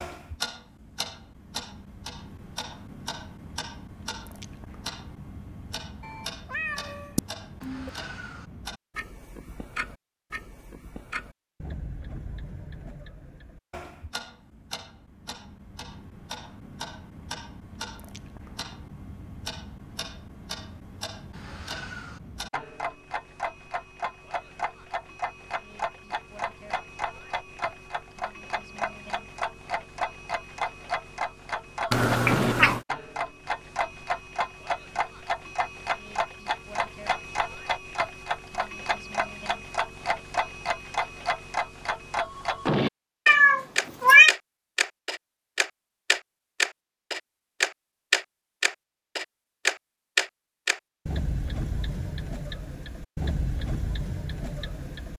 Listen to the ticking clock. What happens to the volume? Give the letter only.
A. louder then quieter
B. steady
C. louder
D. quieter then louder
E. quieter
C.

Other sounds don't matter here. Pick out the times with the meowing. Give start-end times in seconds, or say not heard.
6.0-7.9, 31.9-32.8, 43.2-44.4.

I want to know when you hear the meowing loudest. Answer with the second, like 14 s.
44 s.